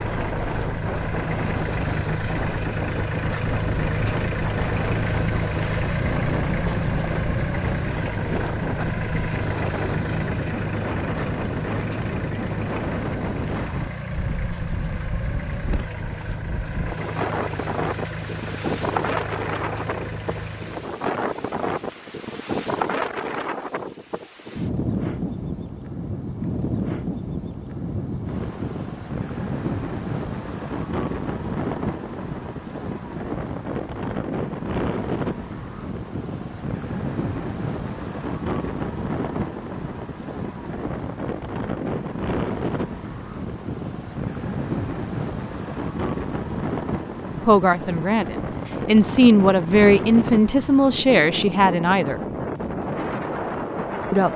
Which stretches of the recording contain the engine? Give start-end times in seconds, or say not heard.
0.0-21.0.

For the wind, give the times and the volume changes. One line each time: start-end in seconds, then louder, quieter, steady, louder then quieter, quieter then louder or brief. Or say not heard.
0.0-54.3 steady.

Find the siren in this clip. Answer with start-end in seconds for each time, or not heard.
not heard.